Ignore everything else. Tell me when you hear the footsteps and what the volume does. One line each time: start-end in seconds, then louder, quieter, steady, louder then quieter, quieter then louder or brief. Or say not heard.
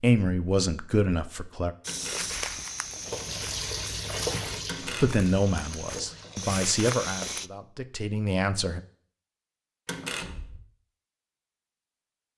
1.8-7.5 quieter then louder.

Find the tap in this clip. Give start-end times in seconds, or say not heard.
3.0-6.5.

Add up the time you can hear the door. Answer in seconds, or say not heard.
2 s.